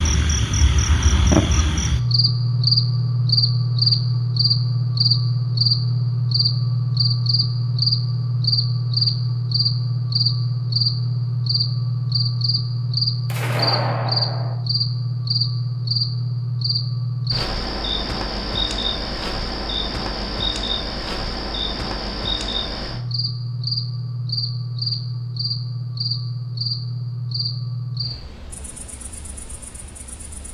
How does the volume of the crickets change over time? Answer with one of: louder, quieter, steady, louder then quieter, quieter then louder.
quieter.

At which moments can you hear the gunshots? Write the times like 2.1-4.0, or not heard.
13.3-14.6.